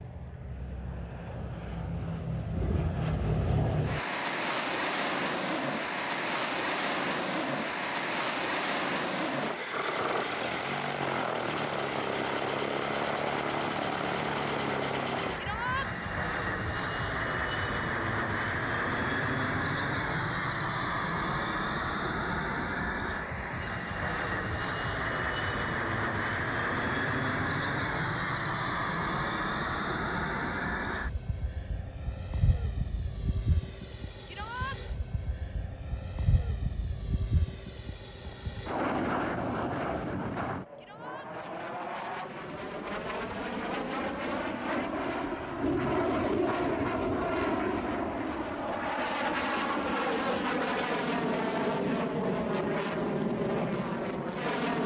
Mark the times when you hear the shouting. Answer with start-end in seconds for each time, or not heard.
15.3-15.9, 34.2-34.8, 40.8-41.3.